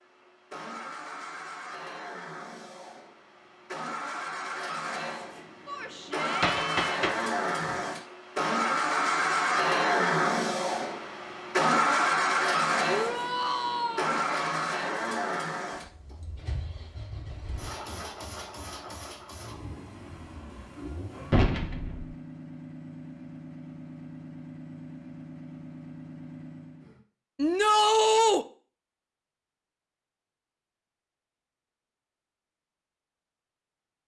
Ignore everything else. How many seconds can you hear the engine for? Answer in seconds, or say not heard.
27 s.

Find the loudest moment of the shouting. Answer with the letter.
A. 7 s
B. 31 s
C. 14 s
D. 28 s
D.